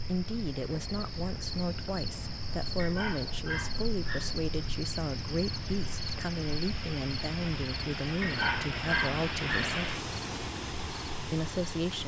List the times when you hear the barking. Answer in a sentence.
You can hear the barking from 2.8 to 4.3 s and from 8.2 to 9.8 s.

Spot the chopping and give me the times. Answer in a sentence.
The chopping can't be heard in this clip.